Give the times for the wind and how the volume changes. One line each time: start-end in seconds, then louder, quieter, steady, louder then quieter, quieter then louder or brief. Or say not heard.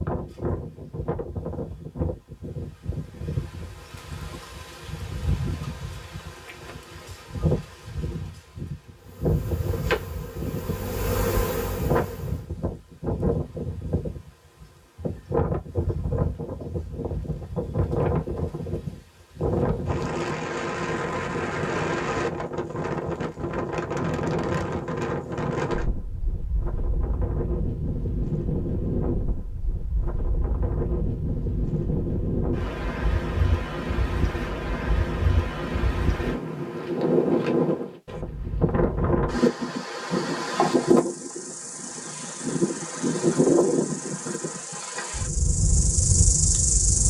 0.0-47.0 louder.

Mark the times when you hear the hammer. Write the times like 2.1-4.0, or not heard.
not heard.